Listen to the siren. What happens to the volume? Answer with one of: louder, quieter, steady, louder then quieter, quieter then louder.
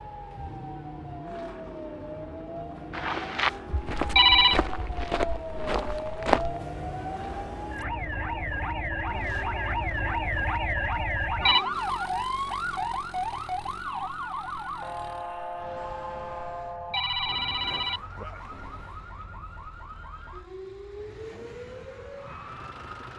louder then quieter.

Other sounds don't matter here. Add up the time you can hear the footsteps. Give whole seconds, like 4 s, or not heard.
4 s.